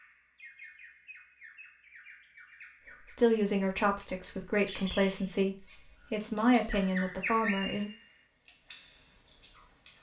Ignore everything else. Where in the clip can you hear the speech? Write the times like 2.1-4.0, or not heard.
3.1-7.9.